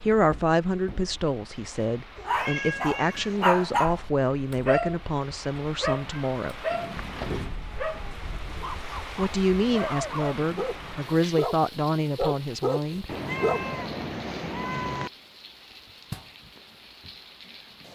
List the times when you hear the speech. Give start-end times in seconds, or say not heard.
0.0-6.6, 9.2-13.1.